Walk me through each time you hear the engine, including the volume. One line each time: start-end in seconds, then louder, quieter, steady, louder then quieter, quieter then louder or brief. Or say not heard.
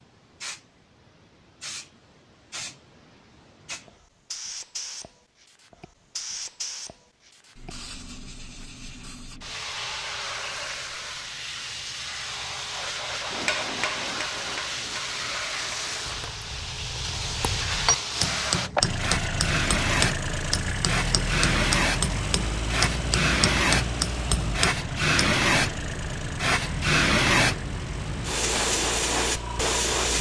18.8-30.1 quieter.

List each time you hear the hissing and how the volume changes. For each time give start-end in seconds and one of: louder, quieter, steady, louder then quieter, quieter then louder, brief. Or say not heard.
0.0-30.1 louder.